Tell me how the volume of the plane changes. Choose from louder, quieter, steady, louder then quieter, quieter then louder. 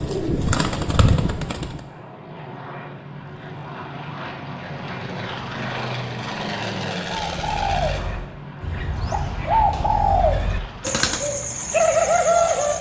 louder then quieter.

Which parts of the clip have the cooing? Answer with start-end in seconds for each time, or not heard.
0.0-1.8, 7.0-12.7.